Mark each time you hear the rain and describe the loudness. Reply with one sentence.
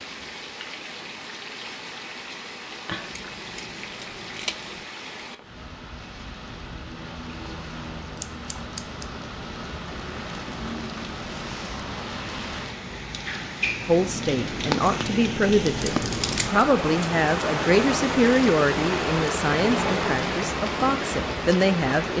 You can hear the rain from 0.0 to 22.1 s, getting louder.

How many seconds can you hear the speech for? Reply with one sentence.
The speech can be heard for 8 seconds in total.